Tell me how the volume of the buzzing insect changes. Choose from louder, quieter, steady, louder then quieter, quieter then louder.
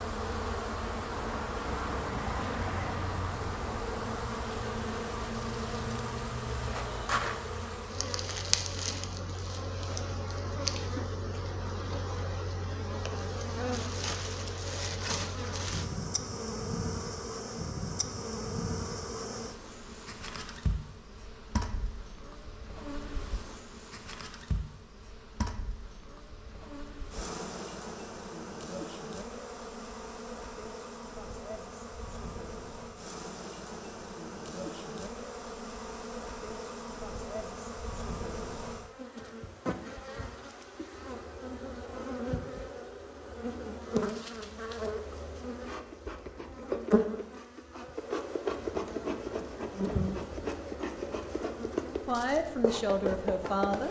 quieter then louder.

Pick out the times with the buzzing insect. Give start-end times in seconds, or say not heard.
0.0-53.8.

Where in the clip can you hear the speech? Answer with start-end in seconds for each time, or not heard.
52.0-53.8.